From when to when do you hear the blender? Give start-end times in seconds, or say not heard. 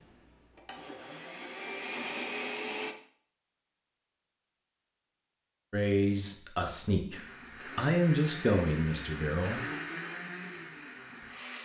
0.0-3.0, 7.1-11.6.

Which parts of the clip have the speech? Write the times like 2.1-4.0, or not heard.
5.7-9.6.